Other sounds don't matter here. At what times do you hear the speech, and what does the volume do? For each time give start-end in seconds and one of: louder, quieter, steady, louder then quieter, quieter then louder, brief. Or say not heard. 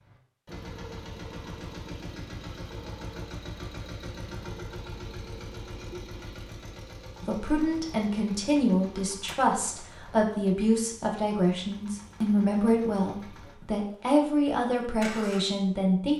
7.2-16.1 steady.